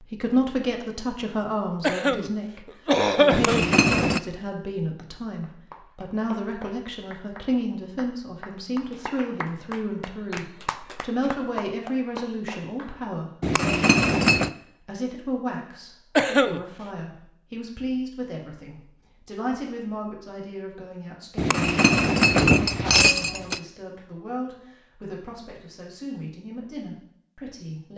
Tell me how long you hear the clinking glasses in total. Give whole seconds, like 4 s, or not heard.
4 s.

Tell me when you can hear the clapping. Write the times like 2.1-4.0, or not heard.
5.4-13.1.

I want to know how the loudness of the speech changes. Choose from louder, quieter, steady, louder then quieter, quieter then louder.
quieter.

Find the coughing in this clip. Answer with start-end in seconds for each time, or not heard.
1.8-3.6, 16.1-16.6.